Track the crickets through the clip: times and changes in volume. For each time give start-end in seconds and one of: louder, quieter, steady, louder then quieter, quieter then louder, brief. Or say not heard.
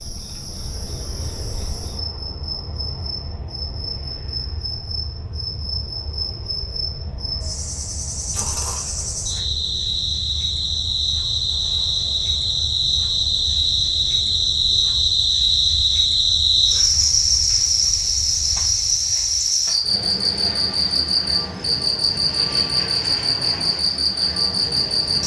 0.0-25.2 louder.